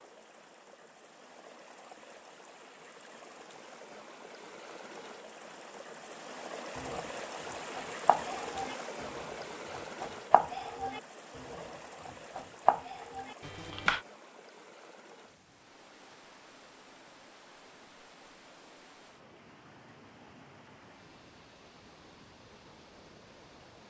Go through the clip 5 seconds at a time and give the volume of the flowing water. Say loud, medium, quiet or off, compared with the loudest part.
medium, loud, medium, quiet, quiet.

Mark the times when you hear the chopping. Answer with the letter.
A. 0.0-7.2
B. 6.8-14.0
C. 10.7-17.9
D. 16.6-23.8
B.